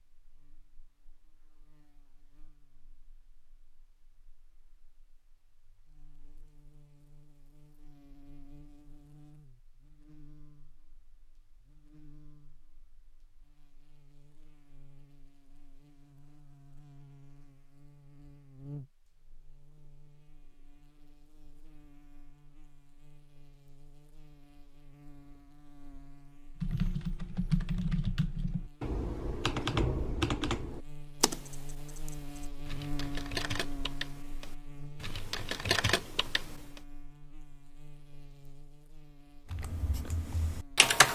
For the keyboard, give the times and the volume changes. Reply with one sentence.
The keyboard can be heard from 26.6 to 36.8 s, getting quieter then louder; and briefly from 39.5 to 41.1 s.